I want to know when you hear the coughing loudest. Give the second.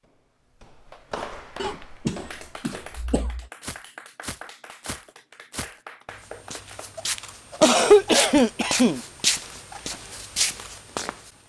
8 s.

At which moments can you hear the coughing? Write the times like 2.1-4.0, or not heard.
1.6-3.5, 7.6-9.0.